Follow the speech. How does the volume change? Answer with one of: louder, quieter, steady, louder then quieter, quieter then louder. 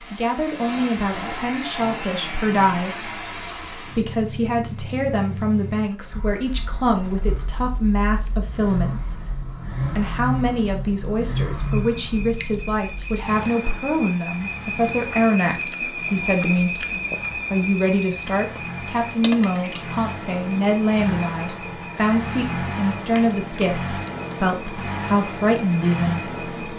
steady.